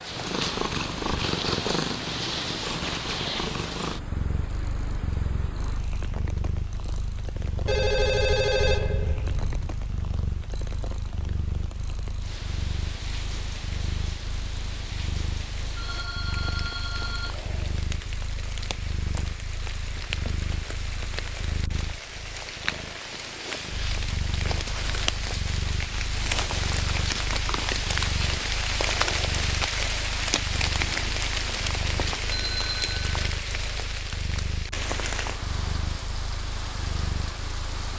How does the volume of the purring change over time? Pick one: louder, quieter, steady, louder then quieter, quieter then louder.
quieter.